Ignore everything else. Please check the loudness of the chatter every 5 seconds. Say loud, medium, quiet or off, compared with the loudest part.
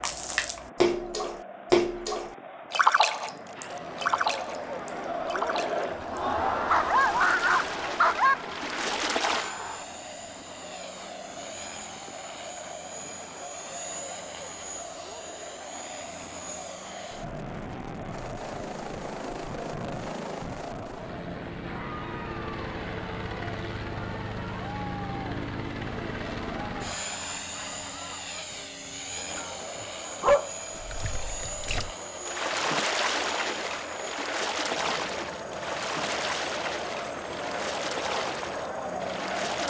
medium, loud, medium, medium, medium, medium, medium, loud.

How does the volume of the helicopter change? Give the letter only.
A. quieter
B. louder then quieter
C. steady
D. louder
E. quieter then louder
B.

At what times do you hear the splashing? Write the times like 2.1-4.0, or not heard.
0.0-9.6, 30.8-39.6.